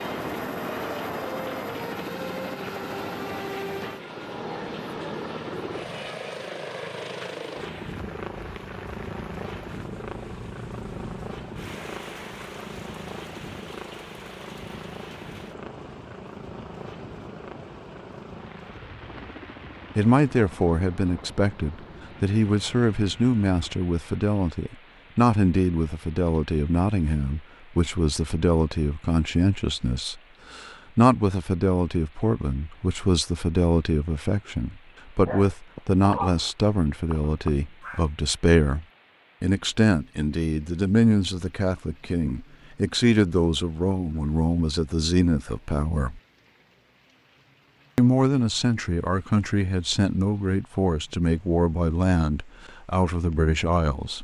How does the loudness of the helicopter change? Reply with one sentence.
The loudness of the helicopter goes down.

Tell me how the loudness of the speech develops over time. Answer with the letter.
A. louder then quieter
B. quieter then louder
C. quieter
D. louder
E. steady
E.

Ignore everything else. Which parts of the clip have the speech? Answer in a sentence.
You can hear the speech from 19.9 to 46.2 s and from 48.0 to 54.1 s.